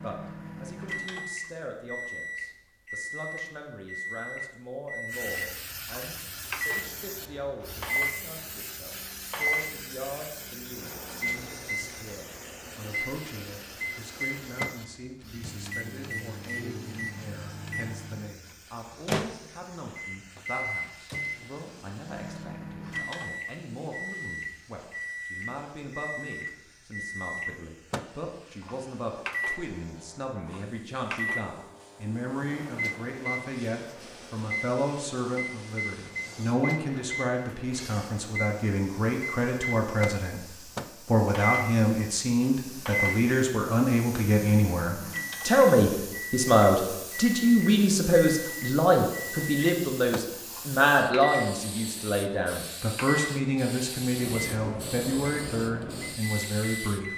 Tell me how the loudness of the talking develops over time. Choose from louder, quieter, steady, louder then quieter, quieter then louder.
louder.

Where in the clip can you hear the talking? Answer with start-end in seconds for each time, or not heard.
0.0-57.1.